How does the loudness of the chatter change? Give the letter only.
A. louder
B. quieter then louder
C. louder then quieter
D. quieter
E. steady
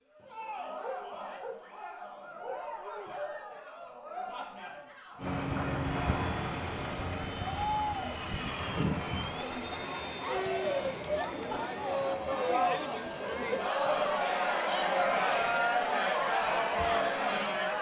A.